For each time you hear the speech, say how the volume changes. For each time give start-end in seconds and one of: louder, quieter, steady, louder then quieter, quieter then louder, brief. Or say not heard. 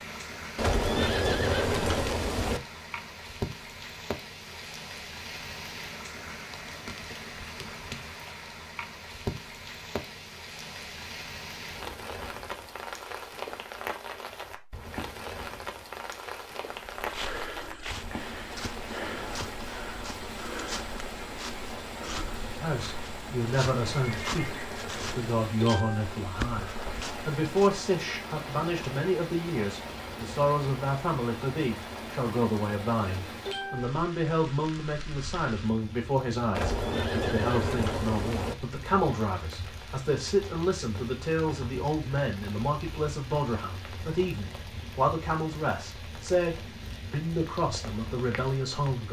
22.6-49.0 steady.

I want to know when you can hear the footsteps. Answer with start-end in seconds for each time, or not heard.
16.9-27.7.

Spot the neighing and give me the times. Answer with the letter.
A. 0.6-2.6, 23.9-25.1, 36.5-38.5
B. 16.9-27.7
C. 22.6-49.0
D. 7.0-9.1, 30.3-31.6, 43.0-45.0
A.